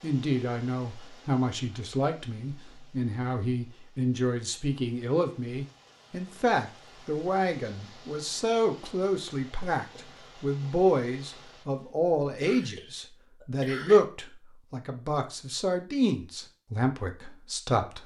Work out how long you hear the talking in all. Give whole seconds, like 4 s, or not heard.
18 s.